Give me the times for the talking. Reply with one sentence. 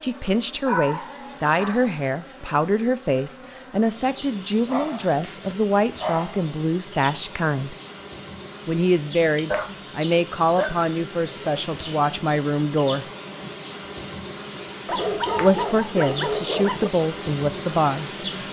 The talking can be heard from 0.0 to 7.8 s, from 8.7 to 13.1 s and from 15.4 to 18.2 s.